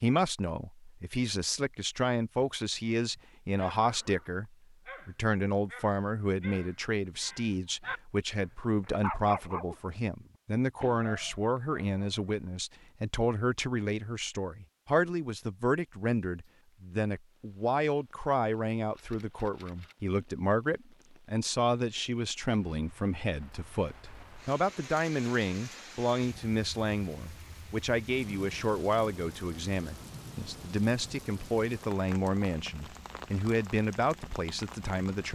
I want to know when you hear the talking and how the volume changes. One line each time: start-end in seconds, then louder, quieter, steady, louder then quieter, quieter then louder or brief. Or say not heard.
0.0-35.3 steady.